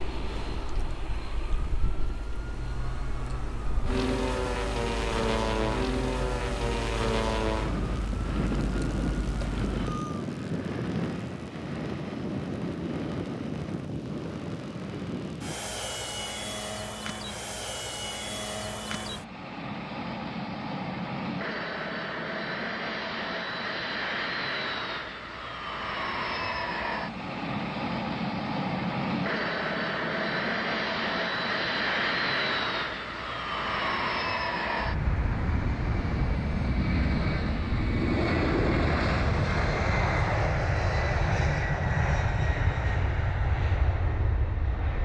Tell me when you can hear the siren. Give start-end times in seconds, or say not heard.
0.0-10.2.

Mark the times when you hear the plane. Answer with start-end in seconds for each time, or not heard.
0.0-44.9.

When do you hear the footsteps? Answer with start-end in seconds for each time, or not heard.
not heard.